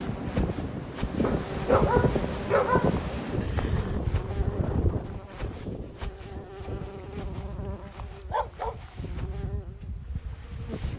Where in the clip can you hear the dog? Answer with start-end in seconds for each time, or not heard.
1.2-3.0, 7.0-8.8.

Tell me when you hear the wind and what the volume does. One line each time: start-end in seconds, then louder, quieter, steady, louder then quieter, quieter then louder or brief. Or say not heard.
0.0-10.9 quieter.